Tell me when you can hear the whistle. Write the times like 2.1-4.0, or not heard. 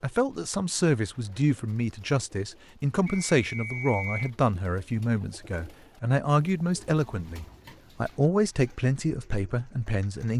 3.0-4.3.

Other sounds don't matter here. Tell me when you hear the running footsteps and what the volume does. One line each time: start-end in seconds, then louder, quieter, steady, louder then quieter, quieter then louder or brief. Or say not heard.
not heard.